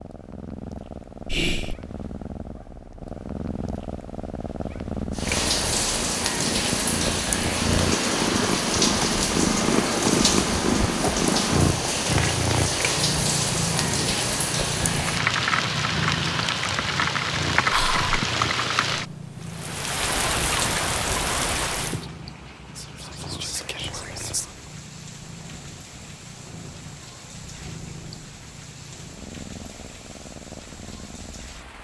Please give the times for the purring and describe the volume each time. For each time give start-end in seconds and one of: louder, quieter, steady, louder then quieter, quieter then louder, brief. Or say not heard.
0.0-31.7 louder then quieter.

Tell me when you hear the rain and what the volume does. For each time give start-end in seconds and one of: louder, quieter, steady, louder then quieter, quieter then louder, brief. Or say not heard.
5.1-31.7 quieter.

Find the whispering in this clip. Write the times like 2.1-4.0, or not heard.
1.2-1.8, 17.7-18.1, 22.8-24.5.